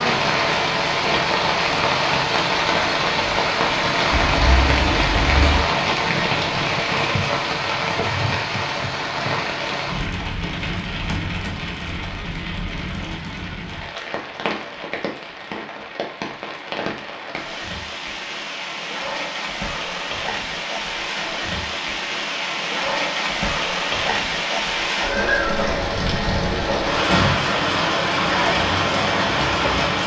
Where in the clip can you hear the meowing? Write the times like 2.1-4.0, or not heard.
4.1-5.7.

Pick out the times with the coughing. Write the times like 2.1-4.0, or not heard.
not heard.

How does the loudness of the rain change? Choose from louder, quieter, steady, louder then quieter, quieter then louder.
quieter then louder.